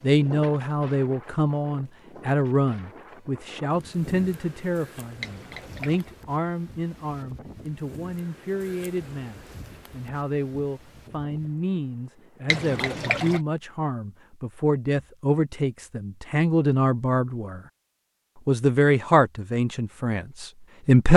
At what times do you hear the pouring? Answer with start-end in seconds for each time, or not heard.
5.2-6.1, 12.4-13.4.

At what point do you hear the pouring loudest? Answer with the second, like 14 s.
13 s.